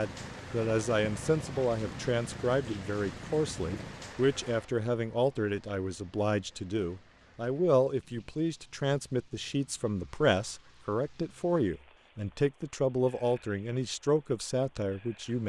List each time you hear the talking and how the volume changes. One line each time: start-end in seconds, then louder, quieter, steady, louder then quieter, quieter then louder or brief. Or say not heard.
0.0-15.4 steady.